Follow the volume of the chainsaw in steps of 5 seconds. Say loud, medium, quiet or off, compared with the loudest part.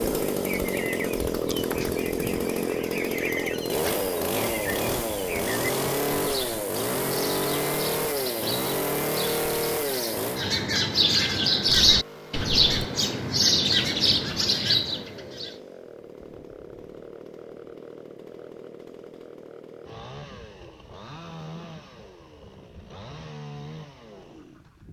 loud, loud, medium, quiet, quiet.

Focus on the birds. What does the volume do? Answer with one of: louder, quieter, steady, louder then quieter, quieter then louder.
louder.